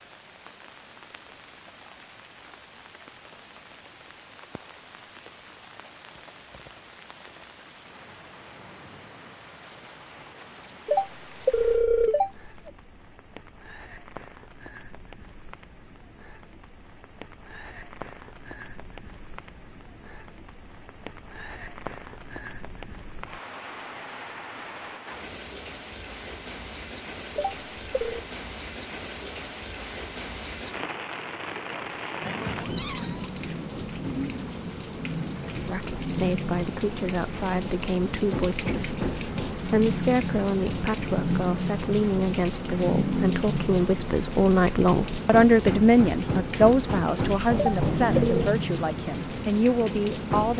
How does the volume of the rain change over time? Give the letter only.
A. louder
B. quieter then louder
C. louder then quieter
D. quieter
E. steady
A.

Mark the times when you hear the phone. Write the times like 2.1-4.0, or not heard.
10.8-12.7, 27.4-28.2, 47.5-48.5.